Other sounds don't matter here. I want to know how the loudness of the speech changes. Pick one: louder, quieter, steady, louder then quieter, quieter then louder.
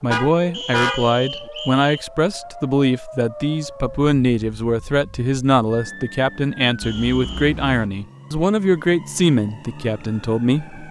steady.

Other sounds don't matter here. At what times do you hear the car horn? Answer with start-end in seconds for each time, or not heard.
0.1-1.5, 6.8-7.9.